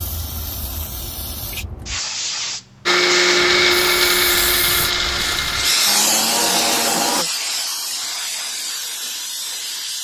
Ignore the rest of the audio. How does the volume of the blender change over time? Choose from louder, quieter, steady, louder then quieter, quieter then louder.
quieter.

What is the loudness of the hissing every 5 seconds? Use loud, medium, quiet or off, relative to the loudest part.
medium, loud.